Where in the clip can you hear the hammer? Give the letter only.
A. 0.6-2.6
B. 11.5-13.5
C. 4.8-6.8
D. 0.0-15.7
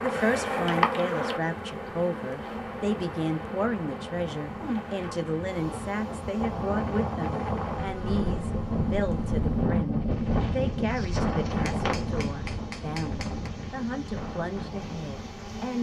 B.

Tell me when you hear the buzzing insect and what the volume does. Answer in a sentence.
The buzzing insect can be heard from 0.0 to 15.7 s, getting quieter.